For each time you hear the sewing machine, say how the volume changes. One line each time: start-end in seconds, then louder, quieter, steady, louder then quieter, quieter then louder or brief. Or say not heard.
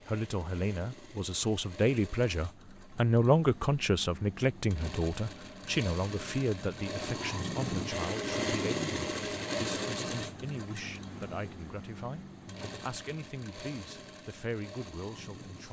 0.0-15.6 louder then quieter.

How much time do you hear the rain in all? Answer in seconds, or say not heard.
not heard.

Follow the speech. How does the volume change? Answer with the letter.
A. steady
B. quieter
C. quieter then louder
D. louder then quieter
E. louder
B.